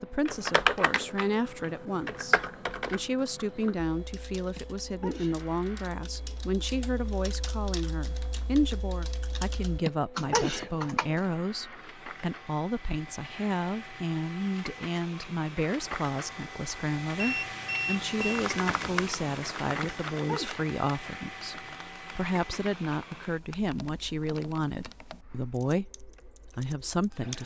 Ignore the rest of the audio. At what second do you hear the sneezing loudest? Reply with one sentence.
The loudest moment of the sneezing is at 10 seconds.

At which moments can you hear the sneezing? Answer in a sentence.
You can hear the sneezing from 4.5 to 5.4 s, from 9.8 to 10.7 s and from 19.8 to 20.6 s.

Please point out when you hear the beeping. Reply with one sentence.
You can hear the beeping from 17.1 to 18.4 s.